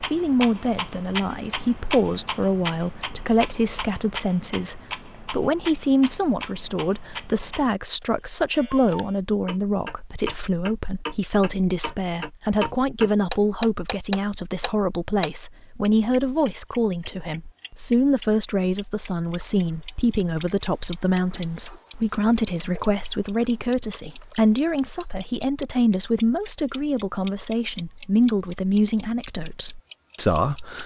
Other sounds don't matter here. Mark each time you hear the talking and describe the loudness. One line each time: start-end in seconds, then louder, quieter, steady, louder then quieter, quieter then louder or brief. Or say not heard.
0.0-30.8 steady.